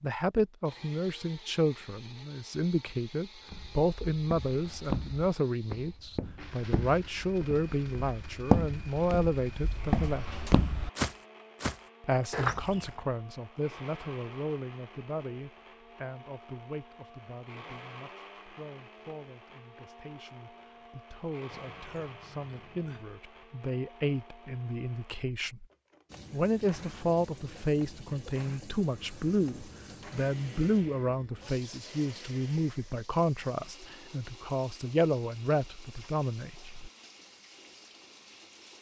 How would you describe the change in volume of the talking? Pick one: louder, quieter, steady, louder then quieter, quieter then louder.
quieter then louder.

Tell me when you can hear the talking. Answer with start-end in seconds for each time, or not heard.
0.0-10.3, 12.0-25.6, 26.3-36.9.